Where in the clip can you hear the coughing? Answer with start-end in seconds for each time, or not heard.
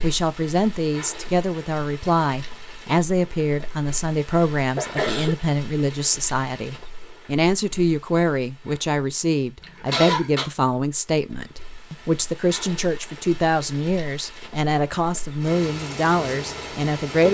4.5-5.3, 9.6-10.4.